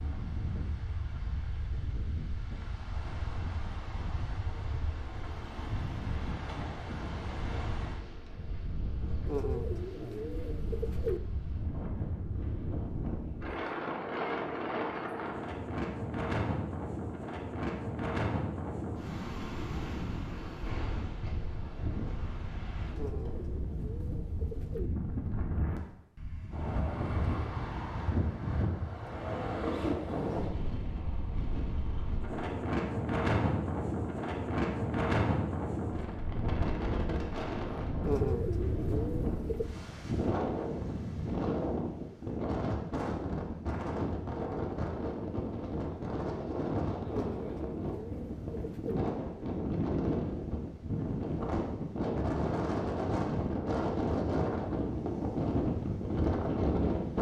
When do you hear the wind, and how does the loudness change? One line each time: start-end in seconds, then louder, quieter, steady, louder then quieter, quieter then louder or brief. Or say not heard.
0.0-57.1 louder.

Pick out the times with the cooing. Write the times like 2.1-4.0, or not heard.
9.2-11.2, 22.9-24.9, 38.0-39.7, 47.0-49.0.